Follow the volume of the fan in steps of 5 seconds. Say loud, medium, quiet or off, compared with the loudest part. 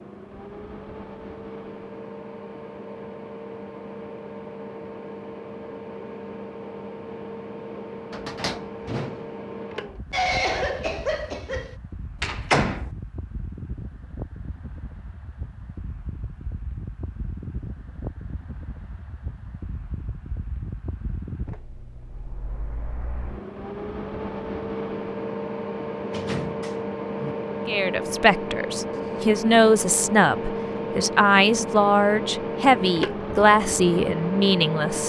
medium, medium, quiet, quiet, medium, loud, loud.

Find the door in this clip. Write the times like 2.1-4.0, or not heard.
8.1-9.2, 12.2-12.9, 26.1-27.4.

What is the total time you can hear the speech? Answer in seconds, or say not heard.
7 s.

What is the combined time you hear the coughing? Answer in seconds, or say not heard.
2 s.